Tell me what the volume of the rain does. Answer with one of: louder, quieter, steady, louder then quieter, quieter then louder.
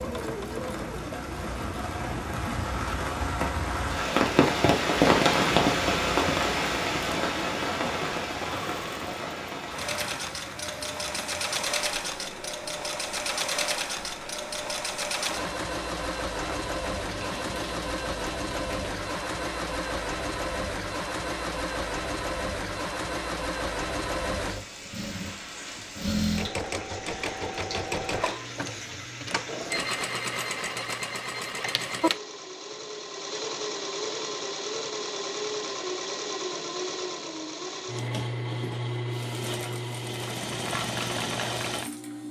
quieter.